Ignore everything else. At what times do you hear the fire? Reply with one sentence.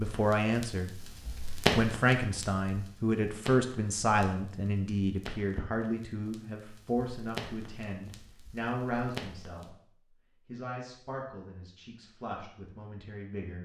The fire can be heard from 0.0 to 9.8 s.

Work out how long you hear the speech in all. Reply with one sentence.
You can hear the speech for 12 seconds altogether.